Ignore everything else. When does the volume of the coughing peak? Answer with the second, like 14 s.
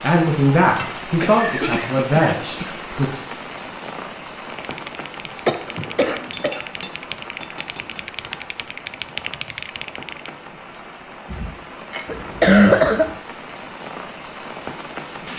13 s.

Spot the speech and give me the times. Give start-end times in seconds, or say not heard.
0.0-3.2.